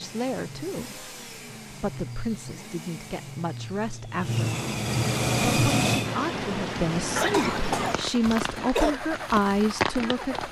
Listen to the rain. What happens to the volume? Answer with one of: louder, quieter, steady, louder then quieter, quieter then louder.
quieter then louder.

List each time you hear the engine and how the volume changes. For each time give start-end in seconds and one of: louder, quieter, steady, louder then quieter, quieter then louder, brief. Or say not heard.
0.0-10.4 louder then quieter.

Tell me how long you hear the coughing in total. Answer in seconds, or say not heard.
2 s.